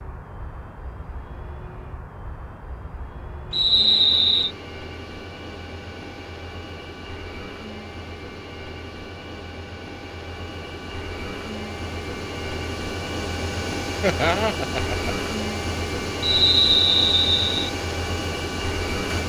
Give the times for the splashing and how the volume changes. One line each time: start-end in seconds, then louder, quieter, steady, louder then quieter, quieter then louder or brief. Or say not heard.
not heard.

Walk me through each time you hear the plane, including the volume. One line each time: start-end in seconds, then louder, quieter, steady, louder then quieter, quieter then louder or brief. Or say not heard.
0.0-19.2 louder.